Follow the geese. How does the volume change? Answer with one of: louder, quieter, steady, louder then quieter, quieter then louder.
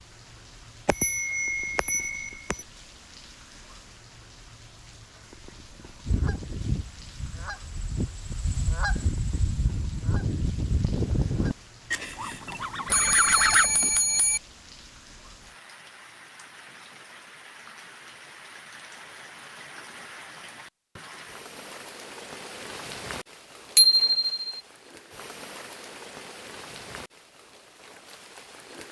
louder.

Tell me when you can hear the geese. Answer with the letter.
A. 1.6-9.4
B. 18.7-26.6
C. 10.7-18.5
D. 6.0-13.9
D.